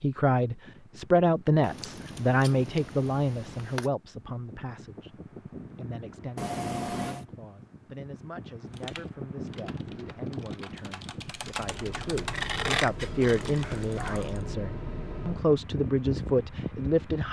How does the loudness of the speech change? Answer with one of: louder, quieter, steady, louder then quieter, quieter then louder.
quieter then louder.